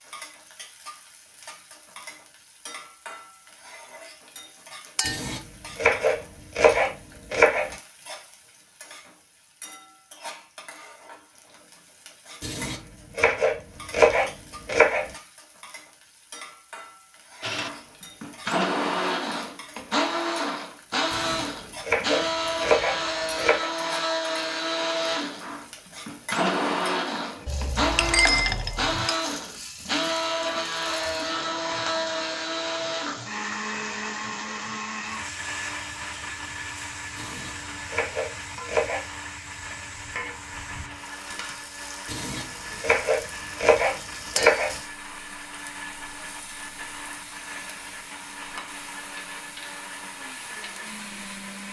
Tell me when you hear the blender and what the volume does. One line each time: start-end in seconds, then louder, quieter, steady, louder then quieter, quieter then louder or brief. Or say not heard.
17.4-51.6 quieter.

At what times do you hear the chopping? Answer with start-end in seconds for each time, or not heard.
5.0-7.7, 12.4-15.1, 21.1-23.7, 37.1-39.0, 42.0-44.8.